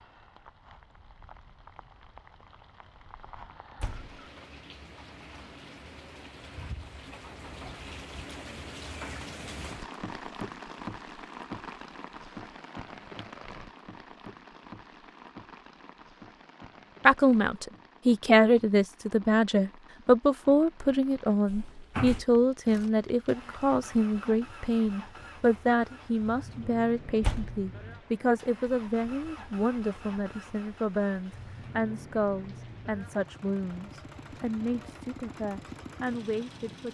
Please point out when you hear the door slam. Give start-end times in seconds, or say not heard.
3.8-4.2, 21.4-22.2, 27.2-27.6.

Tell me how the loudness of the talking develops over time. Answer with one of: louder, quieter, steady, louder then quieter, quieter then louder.
quieter.